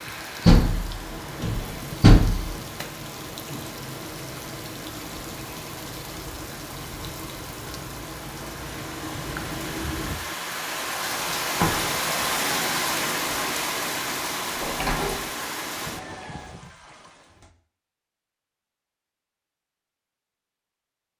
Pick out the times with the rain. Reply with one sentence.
You can hear the rain from 0.0 to 17.5 s.